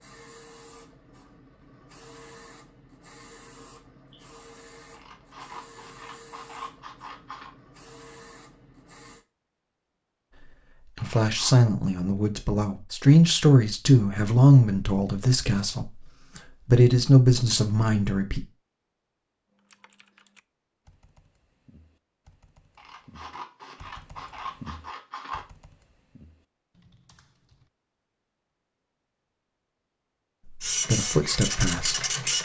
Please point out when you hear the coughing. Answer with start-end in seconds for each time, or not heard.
not heard.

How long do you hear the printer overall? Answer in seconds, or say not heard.
11 s.